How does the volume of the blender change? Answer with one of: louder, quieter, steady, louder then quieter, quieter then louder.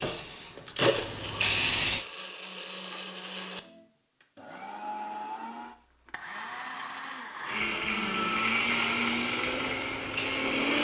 quieter then louder.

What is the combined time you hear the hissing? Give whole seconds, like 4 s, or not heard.
4 s.